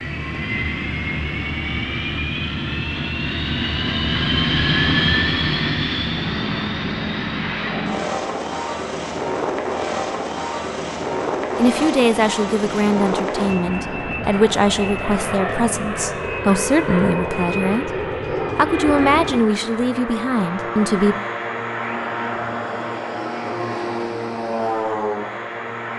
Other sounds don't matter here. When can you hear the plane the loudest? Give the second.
5 s.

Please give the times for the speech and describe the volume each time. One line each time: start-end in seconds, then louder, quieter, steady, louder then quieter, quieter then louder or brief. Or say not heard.
11.6-21.2 steady.